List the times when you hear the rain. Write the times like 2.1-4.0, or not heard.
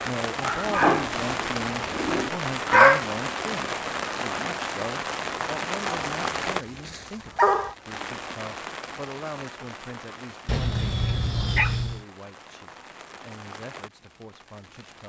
0.0-15.0.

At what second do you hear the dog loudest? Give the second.
3 s.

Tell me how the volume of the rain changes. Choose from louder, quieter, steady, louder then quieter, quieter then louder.
quieter.